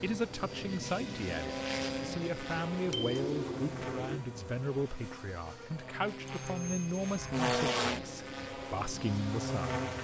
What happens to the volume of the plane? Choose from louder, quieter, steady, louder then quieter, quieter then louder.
quieter then louder.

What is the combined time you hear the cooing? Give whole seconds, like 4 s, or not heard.
2 s.